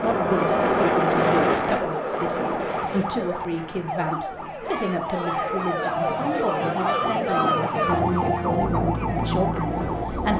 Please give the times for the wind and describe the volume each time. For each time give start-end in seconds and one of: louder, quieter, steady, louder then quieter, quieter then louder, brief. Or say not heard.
0.0-10.3 quieter then louder.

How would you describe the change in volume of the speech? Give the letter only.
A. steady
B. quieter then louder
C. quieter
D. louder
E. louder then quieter
A.